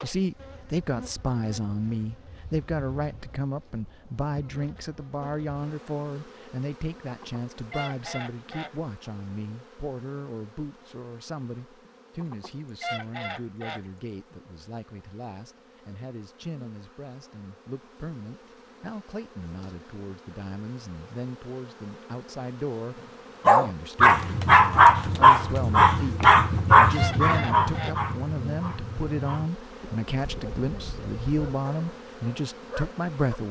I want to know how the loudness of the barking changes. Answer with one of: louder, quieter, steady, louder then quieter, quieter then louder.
quieter.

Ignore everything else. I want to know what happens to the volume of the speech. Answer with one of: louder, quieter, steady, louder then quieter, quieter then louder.
quieter then louder.